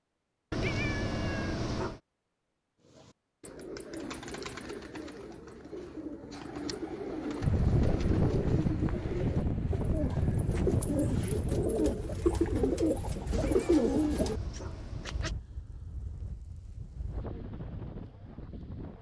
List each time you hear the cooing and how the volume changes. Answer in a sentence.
The cooing can be heard from 2.9 to 14.7 s, getting louder.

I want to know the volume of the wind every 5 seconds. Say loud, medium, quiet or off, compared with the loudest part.
off, loud, medium, quiet.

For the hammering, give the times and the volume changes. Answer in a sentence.
You can't hear the hammering here.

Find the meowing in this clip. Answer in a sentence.
You can hear the meowing from 0.5 to 2.0 s and from 13.3 to 15.3 s.